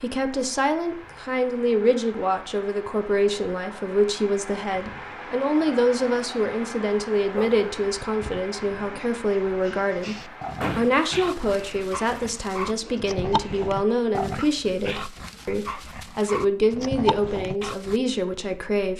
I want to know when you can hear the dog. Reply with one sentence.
You can hear the dog from 7.3 to 18.0 s.